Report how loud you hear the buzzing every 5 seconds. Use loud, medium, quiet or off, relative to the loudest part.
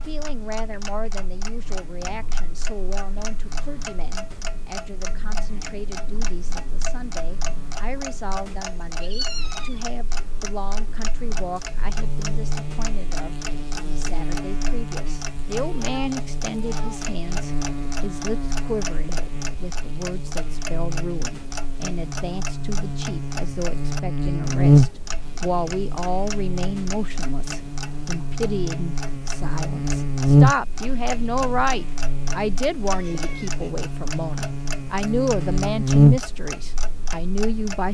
quiet, quiet, quiet, quiet, loud, quiet, loud, loud.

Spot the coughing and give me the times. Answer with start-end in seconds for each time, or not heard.
not heard.